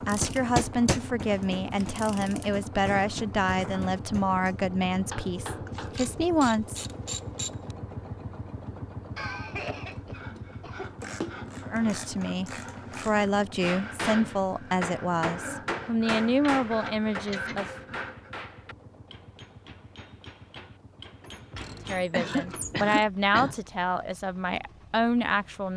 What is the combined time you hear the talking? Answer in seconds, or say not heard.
17 s.